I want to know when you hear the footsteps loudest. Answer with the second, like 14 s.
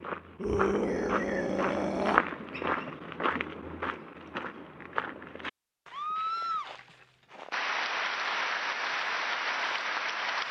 2 s.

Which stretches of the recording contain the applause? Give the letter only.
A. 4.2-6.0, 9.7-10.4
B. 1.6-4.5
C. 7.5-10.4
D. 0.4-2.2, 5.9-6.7
C.